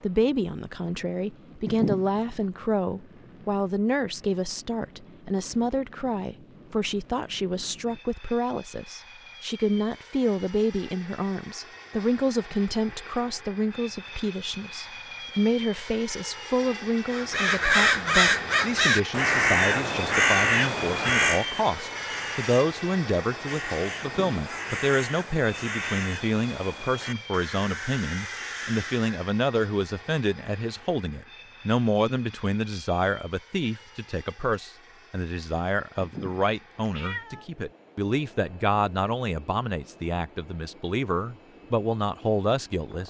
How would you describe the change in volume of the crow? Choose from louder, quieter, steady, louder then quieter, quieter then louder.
quieter.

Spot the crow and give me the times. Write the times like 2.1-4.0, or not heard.
17.1-29.4.